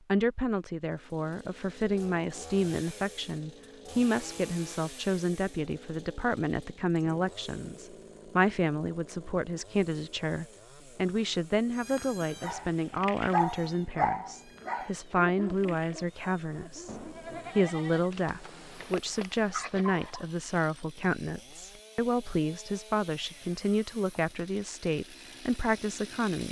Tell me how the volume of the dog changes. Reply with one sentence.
The volume of the dog goes down, then up.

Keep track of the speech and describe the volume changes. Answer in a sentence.
The volume of the speech stays about the same.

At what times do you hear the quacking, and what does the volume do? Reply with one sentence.
You can't hear the quacking here.